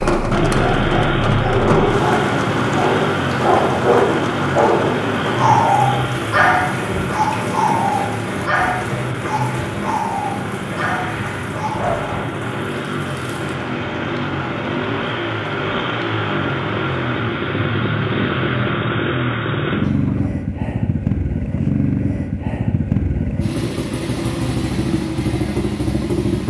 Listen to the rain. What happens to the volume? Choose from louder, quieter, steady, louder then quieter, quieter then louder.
quieter.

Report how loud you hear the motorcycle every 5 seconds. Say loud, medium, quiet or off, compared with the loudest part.
loud, medium, medium, loud, loud, loud.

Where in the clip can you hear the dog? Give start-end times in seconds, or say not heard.
0.2-12.2.